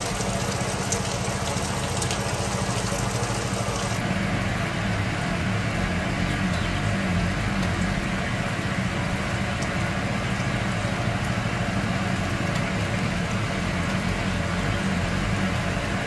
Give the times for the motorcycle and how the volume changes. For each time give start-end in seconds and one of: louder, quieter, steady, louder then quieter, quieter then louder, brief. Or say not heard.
0.0-16.0 steady.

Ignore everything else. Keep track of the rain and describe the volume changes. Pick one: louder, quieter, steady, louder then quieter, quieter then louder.
steady.